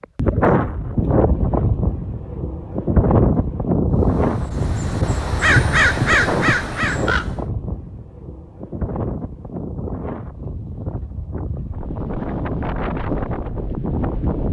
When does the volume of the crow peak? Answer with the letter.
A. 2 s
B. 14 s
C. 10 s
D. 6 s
D.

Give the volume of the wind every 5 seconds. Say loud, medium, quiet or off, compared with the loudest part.
loud, medium, medium.